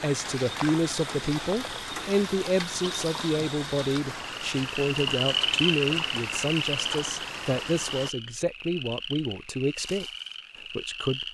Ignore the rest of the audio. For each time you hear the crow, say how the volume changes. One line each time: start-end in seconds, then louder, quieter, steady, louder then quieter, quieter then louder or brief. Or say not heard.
not heard.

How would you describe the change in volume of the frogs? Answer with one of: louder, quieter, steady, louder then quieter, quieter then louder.
louder then quieter.